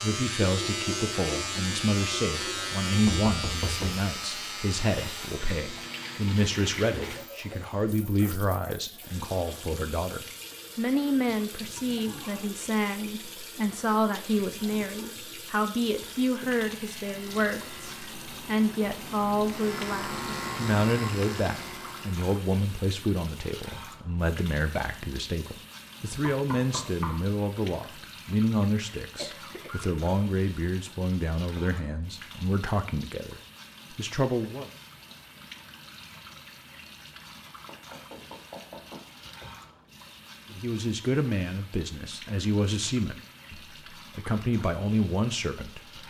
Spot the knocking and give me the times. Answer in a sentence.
You can hear the knocking from 3.0 to 4.0 s, from 26.3 to 27.2 s and from 37.6 to 39.1 s.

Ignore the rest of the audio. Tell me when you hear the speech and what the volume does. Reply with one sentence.
The speech can be heard from 0.0 to 34.7 s, at a steady volume; and from 40.5 to 46.0 s, at a steady volume.